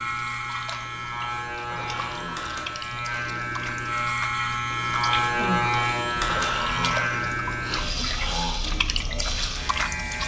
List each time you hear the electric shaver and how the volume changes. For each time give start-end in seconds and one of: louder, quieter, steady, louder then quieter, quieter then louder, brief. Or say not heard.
0.0-10.2 louder then quieter.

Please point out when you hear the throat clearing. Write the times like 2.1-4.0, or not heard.
1.6-3.3, 6.2-8.6.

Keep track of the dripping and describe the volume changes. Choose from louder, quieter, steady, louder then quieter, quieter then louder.
louder.